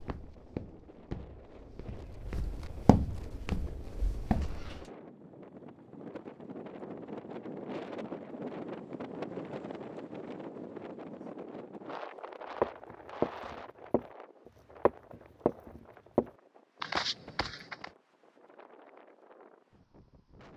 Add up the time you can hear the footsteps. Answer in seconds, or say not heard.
9 s.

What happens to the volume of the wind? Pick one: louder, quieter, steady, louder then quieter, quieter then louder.
louder then quieter.